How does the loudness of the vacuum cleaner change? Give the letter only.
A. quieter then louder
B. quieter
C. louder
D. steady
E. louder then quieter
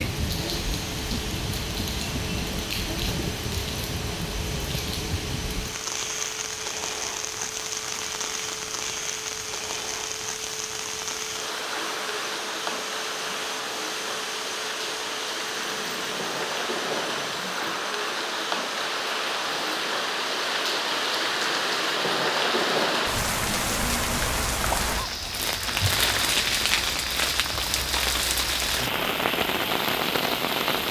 D.